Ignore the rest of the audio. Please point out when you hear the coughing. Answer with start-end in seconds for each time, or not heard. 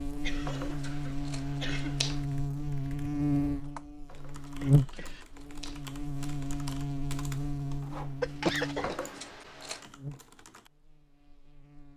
0.2-2.0, 4.6-5.2, 8.2-8.9.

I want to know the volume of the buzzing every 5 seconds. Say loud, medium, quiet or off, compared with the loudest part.
loud, medium, quiet.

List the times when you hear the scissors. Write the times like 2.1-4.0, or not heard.
0.5-2.2, 4.0-5.8, 8.8-9.8.